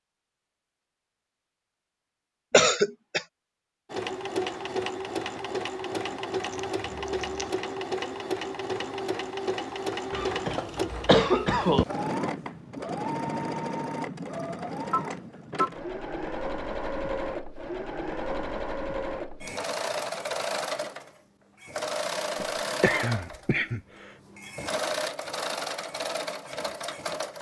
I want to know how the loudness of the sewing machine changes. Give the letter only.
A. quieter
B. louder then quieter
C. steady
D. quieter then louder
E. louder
C.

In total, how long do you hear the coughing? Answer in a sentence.
You can hear the coughing for 4 seconds altogether.